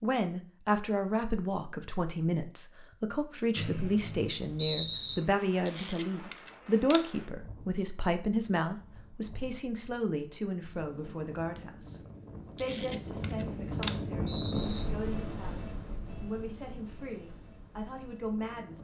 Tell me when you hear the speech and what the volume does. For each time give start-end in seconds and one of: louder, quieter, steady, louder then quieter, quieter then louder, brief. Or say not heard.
0.0-18.8 quieter.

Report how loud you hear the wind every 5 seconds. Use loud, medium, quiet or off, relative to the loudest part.
off, quiet, loud, medium.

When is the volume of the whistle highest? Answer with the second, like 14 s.
5 s.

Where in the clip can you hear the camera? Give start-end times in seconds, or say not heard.
5.7-7.0, 12.6-13.9.